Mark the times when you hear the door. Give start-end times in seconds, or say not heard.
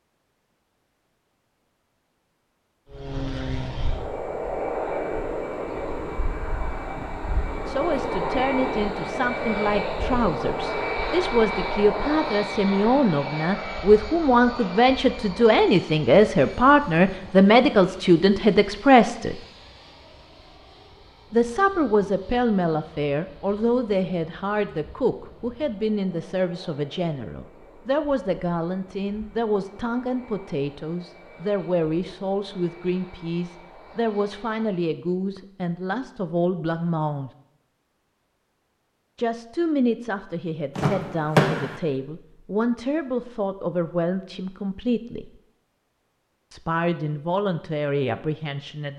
40.8-41.8.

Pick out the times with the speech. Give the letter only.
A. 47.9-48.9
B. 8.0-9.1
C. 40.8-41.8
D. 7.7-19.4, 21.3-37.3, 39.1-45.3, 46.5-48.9
D.